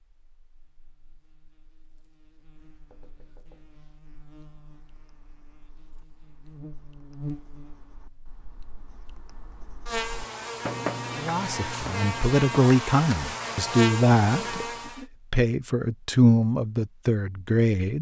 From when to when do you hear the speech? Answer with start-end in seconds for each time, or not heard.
11.2-17.9.